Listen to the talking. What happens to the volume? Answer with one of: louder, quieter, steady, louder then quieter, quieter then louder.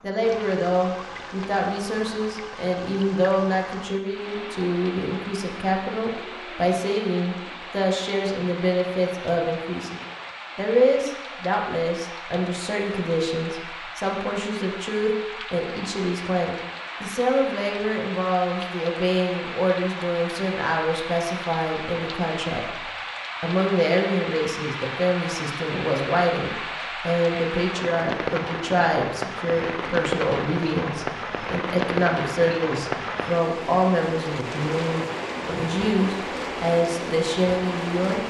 steady.